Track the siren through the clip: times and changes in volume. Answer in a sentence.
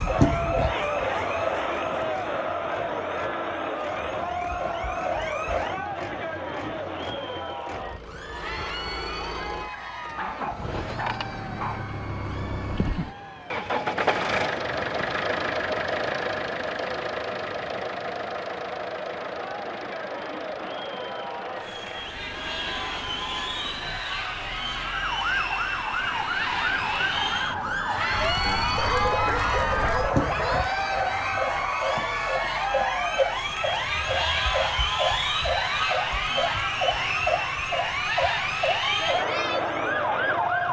The siren can be heard from 0.0 to 5.8 s, getting quieter then louder; and from 24.9 to 40.6 s, at a steady volume.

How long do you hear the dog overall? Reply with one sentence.
You can hear the dog for 4 seconds altogether.